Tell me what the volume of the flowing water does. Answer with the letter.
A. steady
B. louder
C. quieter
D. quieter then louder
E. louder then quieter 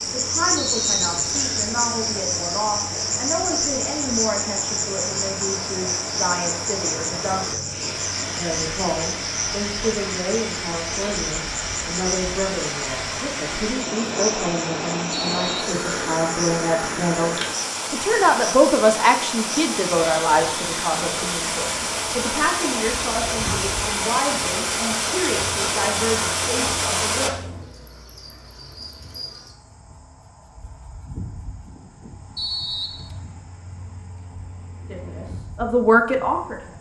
B.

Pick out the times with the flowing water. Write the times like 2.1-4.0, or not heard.
0.0-27.3.